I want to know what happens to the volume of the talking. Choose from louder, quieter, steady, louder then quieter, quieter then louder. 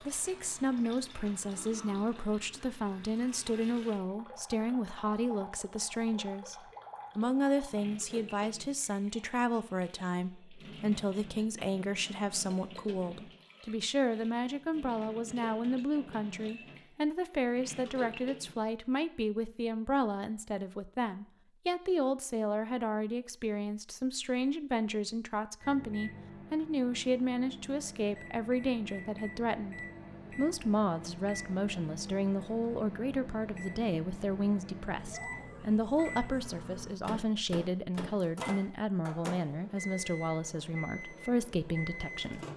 steady.